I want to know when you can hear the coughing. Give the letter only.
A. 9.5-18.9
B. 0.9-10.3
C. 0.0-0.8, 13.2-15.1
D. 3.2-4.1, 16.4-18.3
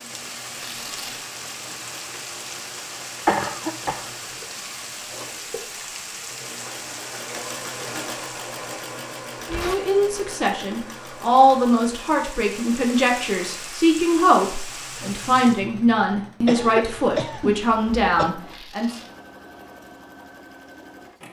D.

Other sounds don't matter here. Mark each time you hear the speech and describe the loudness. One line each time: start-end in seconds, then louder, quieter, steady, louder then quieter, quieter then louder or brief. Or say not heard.
9.5-18.9 steady.